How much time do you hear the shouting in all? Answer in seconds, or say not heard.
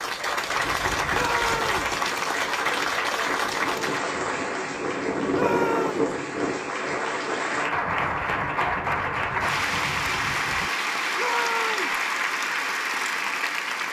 2 s.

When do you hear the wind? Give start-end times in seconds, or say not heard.
0.2-10.7.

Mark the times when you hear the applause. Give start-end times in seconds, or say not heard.
0.0-13.8.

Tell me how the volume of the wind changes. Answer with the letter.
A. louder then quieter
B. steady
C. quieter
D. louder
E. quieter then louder
A.